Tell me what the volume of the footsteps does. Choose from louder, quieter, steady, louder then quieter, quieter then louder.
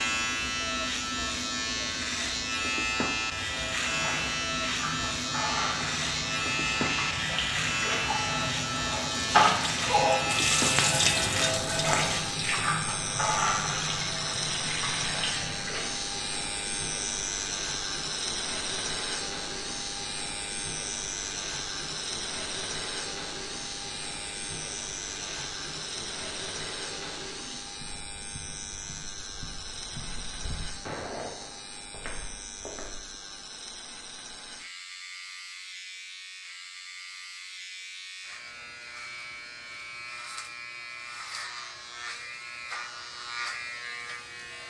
louder then quieter.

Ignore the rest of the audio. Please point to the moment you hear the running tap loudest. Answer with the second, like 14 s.
10 s.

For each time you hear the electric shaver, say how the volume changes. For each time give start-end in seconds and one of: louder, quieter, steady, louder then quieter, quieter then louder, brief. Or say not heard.
0.0-44.6 quieter.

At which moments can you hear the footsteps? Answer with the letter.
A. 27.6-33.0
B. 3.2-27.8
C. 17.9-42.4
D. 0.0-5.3
A.